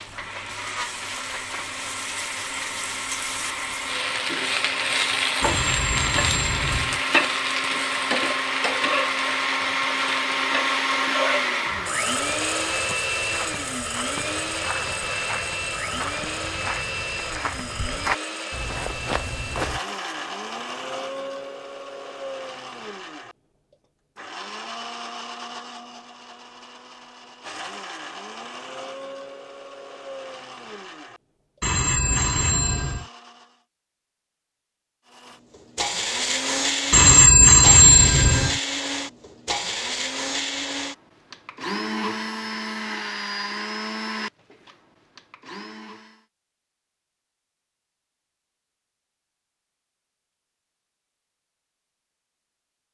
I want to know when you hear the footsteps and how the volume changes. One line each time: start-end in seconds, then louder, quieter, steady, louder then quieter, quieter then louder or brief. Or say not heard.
11.7-19.8 louder.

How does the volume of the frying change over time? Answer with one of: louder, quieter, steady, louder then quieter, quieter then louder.
louder then quieter.